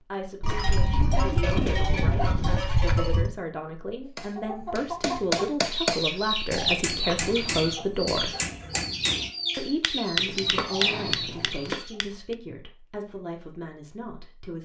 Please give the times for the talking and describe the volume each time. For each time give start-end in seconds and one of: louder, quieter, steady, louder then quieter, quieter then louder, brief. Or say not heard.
0.0-8.3 louder
9.6-14.6 quieter.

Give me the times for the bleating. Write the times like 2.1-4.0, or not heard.
0.4-3.4, 6.9-8.2, 10.2-11.8.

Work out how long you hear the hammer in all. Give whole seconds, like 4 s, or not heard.
8 s.